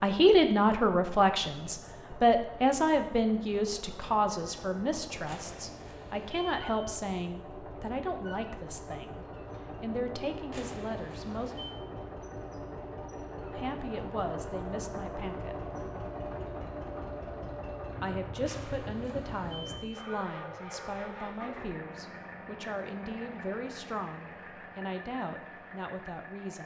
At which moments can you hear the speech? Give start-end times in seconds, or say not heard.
0.0-11.6, 13.5-15.7, 18.0-26.6.